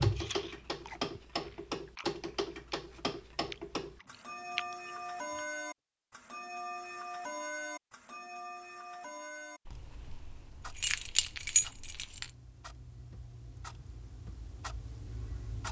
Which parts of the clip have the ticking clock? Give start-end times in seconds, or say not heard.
0.0-15.6.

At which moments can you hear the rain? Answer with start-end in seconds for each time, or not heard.
not heard.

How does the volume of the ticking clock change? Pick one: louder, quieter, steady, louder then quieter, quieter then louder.
quieter.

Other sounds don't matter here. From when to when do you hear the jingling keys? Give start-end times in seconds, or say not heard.
9.7-12.3.